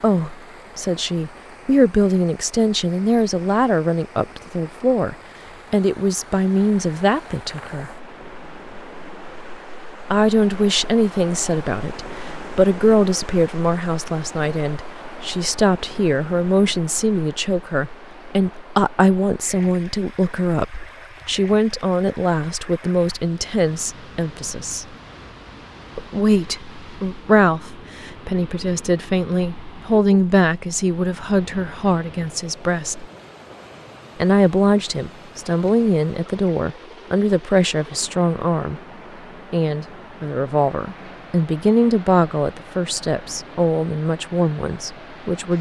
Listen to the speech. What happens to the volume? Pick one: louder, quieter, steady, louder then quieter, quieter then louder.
steady.